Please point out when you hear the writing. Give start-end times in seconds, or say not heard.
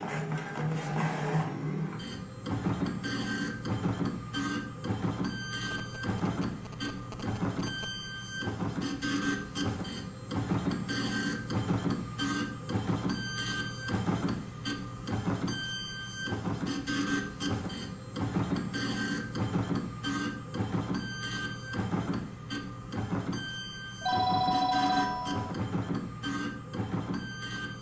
not heard.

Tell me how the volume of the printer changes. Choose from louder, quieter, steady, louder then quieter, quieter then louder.
steady.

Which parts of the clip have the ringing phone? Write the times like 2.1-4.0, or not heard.
5.7-8.0, 24.0-25.6.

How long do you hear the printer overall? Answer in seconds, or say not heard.
28 s.